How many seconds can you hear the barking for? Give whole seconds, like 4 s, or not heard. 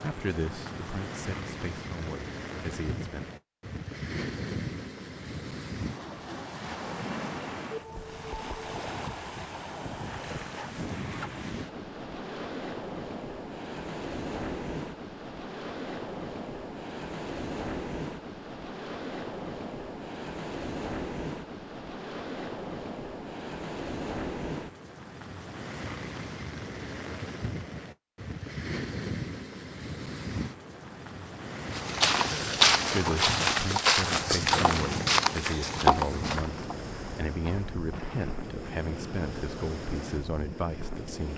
not heard.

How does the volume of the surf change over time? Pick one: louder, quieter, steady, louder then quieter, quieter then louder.
steady.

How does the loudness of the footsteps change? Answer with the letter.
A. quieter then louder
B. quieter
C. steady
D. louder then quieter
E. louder
B.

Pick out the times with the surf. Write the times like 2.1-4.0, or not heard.
0.0-41.3.